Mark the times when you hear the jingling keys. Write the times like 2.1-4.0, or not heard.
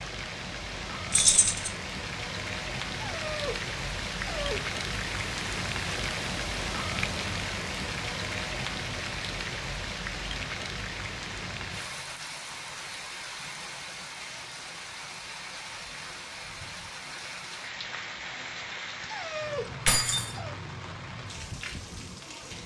1.1-1.7, 19.9-20.4.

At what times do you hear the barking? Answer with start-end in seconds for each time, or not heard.
3.0-4.7, 19.0-20.6.